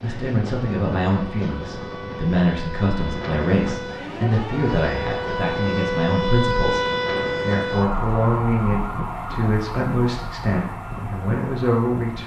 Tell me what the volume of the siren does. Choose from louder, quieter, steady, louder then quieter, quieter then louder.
louder then quieter.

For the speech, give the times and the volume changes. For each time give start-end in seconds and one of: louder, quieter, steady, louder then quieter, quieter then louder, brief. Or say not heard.
0.0-12.2 steady.